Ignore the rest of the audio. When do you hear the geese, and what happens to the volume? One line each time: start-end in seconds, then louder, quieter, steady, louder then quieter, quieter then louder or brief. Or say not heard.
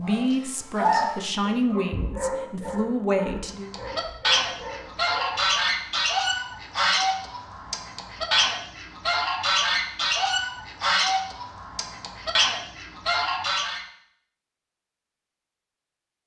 3.5-13.8 steady.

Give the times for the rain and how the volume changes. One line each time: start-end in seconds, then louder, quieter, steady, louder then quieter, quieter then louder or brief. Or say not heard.
not heard.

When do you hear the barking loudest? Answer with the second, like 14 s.
1 s.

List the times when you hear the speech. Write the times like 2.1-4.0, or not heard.
0.0-3.7.